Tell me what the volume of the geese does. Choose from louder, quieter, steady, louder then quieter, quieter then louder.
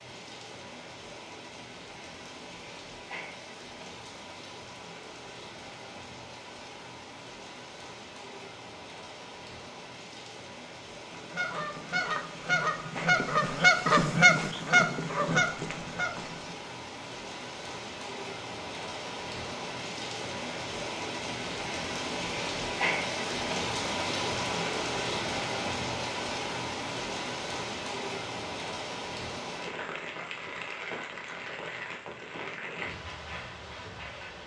louder then quieter.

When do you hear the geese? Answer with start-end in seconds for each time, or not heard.
11.1-16.6.